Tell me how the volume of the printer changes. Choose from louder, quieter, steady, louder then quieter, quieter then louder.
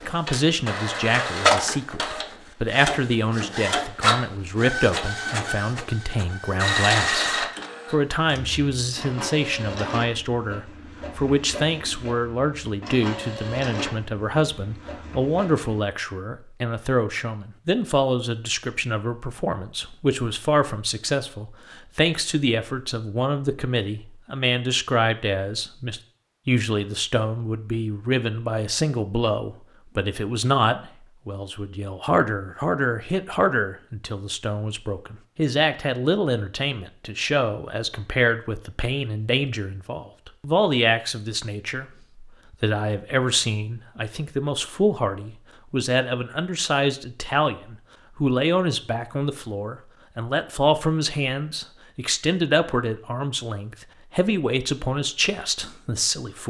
quieter.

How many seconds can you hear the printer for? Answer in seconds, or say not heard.
16 s.